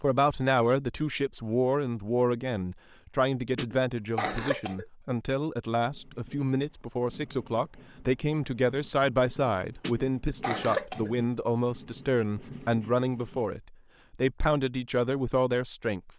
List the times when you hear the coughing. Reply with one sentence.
The coughing can be heard from 3.5 to 4.8 s and from 9.8 to 11.2 s.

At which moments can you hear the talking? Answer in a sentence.
The talking can be heard from 0.0 to 16.1 s.